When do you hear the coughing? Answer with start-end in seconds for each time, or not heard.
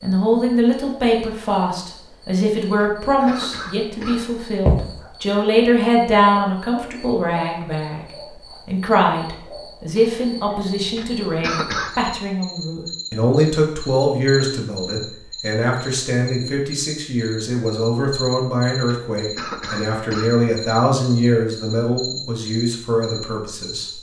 2.8-4.2, 10.9-11.9, 18.9-20.4.